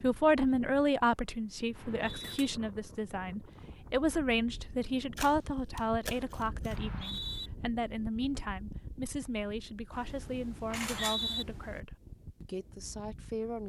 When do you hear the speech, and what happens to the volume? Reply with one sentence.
The speech can be heard from 0.0 to 13.6 s, getting quieter.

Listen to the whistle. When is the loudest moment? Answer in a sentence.
The loudest moment of the whistle is at 11 seconds.